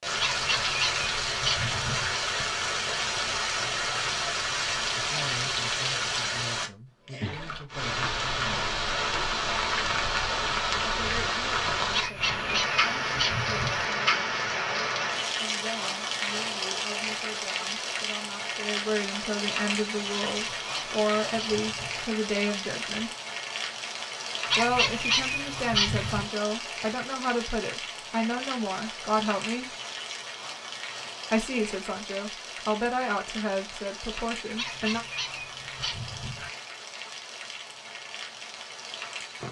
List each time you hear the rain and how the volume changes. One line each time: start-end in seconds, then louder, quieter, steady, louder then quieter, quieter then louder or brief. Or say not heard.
0.0-39.4 quieter.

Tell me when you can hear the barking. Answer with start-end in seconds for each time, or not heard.
0.2-2.1, 11.9-13.9, 20.2-22.1, 24.5-26.2, 34.5-36.5.